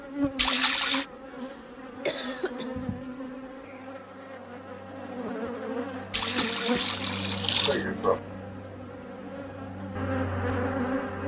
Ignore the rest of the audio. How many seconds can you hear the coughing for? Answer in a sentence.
You can hear the coughing for 2 seconds altogether.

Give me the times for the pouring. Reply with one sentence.
You can hear the pouring from 0.3 to 1.1 s and from 6.1 to 7.8 s.